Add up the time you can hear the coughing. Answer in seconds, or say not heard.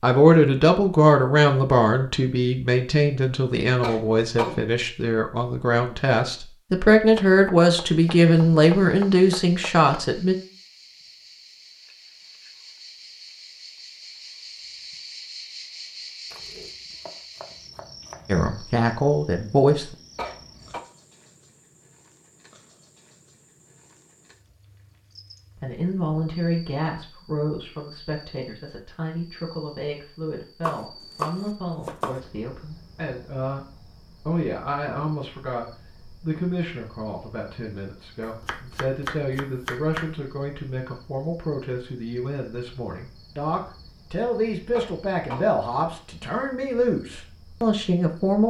2 s.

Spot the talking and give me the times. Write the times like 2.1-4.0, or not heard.
0.0-10.3, 18.2-19.9, 25.6-48.4.